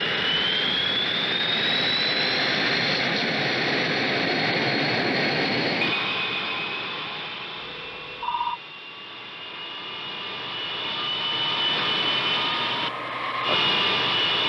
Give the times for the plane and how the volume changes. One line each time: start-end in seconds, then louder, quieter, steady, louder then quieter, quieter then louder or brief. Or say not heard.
0.0-14.4 quieter then louder.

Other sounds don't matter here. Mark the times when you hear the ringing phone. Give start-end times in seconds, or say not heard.
7.5-8.6.